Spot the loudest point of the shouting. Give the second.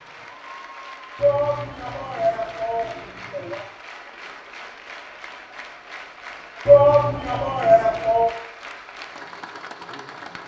7 s.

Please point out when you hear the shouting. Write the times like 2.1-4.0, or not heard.
1.1-3.6, 6.7-8.3.